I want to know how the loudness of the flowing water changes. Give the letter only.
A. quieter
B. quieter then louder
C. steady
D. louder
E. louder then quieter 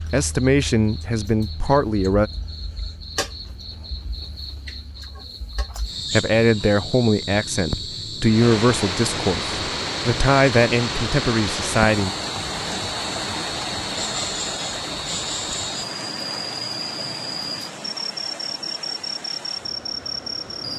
A.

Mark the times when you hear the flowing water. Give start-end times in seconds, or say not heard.
8.2-20.7.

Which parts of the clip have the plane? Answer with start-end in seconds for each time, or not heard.
not heard.